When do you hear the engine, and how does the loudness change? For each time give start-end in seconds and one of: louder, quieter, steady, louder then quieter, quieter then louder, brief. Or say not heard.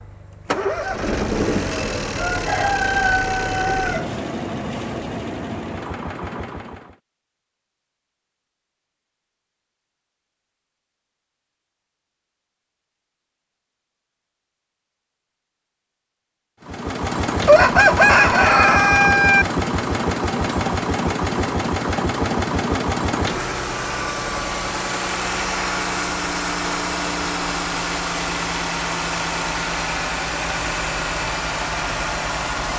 0.0-7.0 quieter
16.6-32.7 steady.